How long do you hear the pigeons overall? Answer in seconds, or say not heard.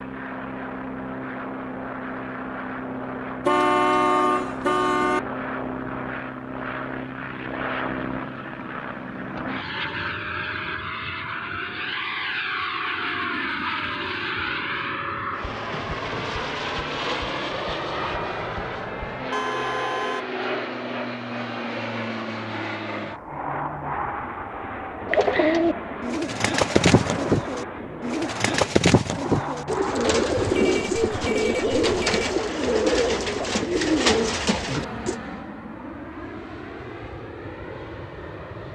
10 s.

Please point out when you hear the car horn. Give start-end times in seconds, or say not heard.
3.5-5.2, 19.3-20.2, 30.3-32.0.